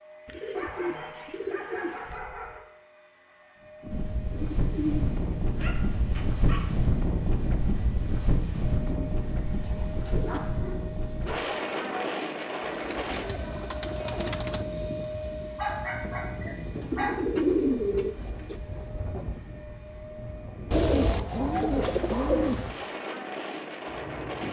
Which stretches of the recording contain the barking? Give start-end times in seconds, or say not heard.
0.5-2.6, 5.5-6.7, 10.2-12.1, 15.6-17.2, 20.7-22.3.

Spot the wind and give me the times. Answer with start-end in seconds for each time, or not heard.
3.8-24.4.